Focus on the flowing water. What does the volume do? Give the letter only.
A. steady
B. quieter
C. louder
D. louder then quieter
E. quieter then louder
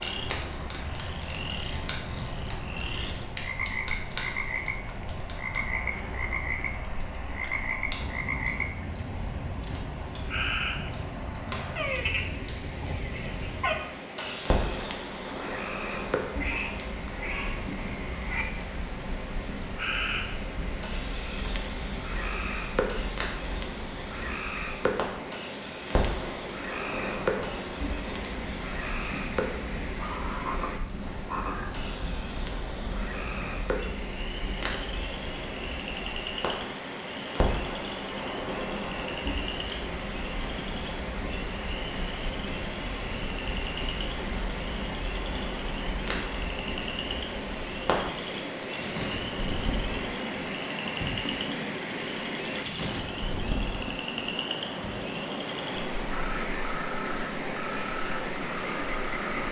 C.